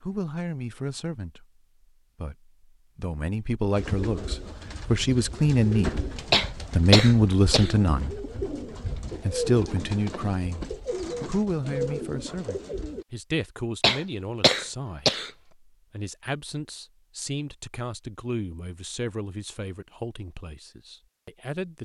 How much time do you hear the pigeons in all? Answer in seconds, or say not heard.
9 s.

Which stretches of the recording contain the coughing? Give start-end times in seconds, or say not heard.
6.3-7.7, 13.8-15.3.